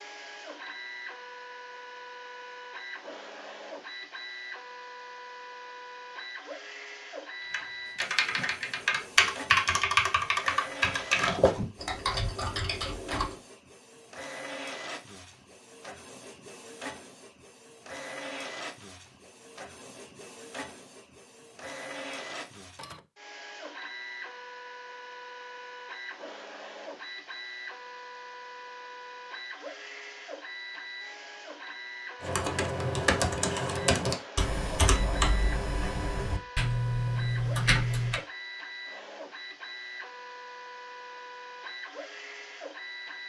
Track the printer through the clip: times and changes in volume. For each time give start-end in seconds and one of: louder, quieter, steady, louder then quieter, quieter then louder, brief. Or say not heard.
0.0-43.2 steady.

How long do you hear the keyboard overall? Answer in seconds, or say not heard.
12 s.